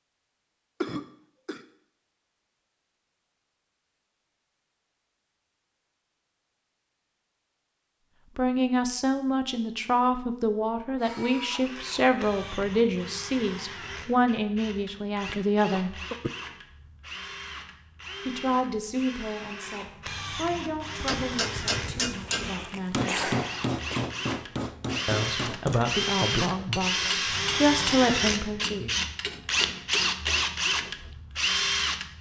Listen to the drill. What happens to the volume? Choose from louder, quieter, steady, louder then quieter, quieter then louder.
louder.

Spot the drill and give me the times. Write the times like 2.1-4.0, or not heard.
10.9-32.1.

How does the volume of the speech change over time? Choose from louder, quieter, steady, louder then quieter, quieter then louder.
quieter then louder.